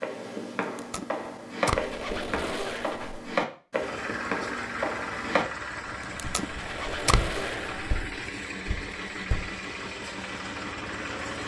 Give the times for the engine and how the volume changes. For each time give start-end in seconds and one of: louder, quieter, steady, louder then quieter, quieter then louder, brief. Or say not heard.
3.8-11.4 steady.